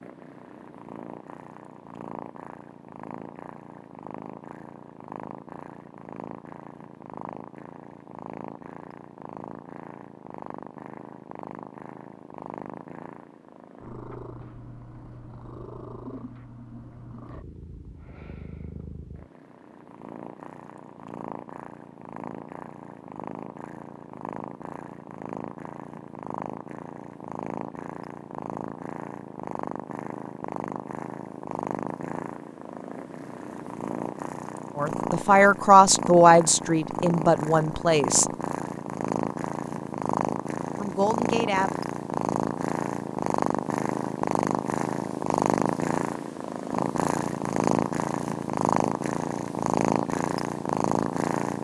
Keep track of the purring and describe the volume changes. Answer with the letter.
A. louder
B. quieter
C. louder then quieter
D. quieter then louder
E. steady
A.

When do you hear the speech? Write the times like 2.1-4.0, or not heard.
34.8-38.3, 40.8-41.8.